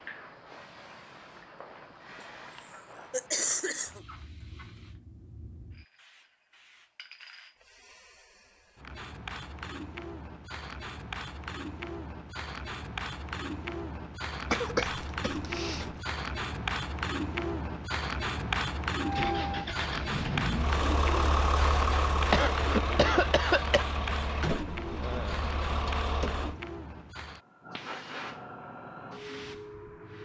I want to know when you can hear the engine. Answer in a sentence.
You can hear the engine from 19.0 to 26.6 s.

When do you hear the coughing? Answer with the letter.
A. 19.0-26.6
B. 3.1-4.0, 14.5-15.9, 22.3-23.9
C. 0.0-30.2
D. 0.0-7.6
B.